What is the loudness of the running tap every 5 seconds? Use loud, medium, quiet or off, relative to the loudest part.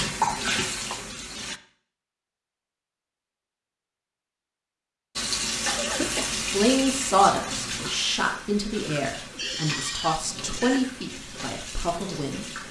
loud, loud, medium.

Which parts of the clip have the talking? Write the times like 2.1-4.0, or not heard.
6.2-12.6.